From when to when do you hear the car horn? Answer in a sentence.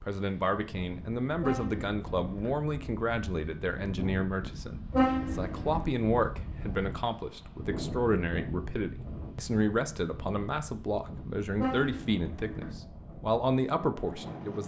The car horn can be heard from 1.4 to 2.5 s, from 4.9 to 5.9 s and from 11.6 to 12.8 s.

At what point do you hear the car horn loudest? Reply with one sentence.
The volume of the car horn peaks at 5 seconds.